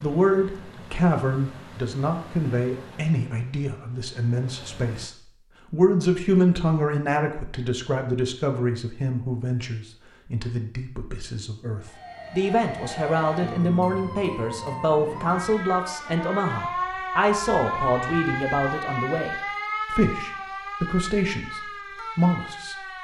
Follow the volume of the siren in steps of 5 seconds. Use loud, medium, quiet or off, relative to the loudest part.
off, off, medium, loud, medium.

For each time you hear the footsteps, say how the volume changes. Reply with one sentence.
You can't hear the footsteps here.